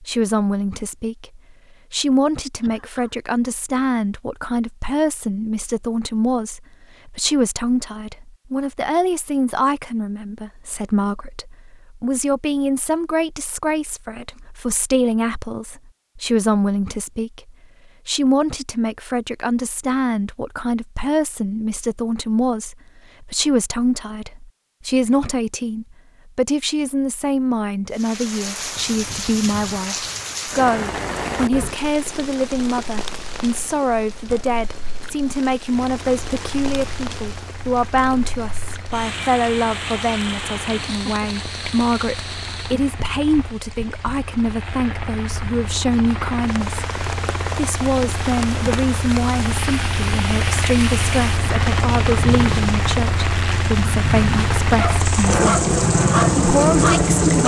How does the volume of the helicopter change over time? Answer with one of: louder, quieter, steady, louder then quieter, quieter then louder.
louder.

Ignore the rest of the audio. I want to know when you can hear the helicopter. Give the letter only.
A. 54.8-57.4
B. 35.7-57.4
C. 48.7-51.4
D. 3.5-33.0
B.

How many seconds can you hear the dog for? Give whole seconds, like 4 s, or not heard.
3 s.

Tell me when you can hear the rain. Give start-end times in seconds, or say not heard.
27.9-57.4.